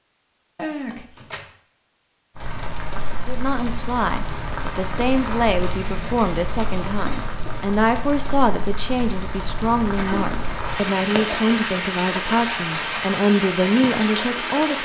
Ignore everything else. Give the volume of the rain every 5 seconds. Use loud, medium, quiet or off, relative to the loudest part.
medium, medium, loud.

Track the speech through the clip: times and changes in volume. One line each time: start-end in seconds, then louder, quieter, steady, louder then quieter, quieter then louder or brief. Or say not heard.
3.2-14.7 steady.